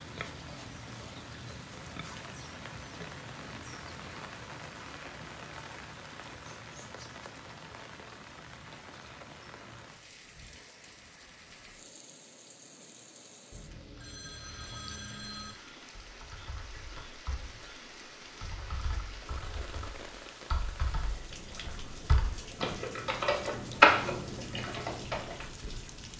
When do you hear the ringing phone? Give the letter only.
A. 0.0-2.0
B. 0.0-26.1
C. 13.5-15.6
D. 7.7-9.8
C.